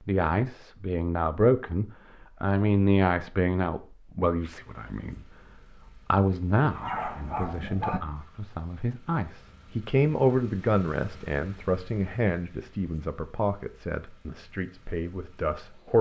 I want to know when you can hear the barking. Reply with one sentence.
The barking can be heard from 6.8 to 8.0 s.